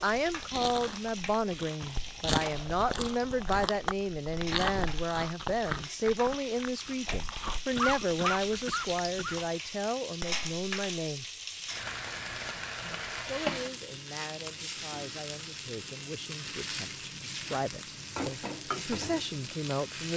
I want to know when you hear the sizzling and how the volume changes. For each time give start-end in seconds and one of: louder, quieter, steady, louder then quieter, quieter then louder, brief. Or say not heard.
0.0-20.1 louder.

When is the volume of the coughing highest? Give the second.
8 s.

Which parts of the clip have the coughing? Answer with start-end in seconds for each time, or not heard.
7.8-9.4.